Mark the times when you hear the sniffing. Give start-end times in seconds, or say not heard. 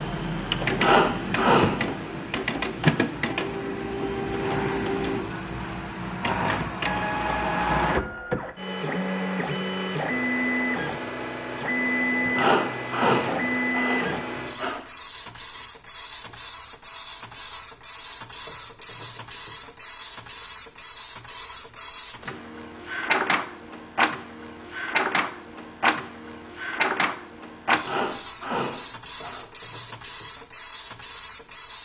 0.7-1.8, 12.2-14.8, 27.8-29.4.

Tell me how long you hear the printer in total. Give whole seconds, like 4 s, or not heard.
32 s.